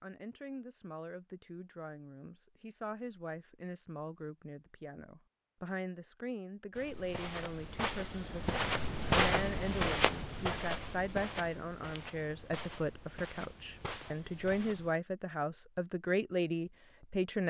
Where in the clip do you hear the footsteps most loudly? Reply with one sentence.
The loudest moment of the footsteps is at 9 seconds.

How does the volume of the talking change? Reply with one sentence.
The loudness of the talking goes up.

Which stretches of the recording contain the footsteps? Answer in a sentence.
You can hear the footsteps from 6.8 to 14.9 s.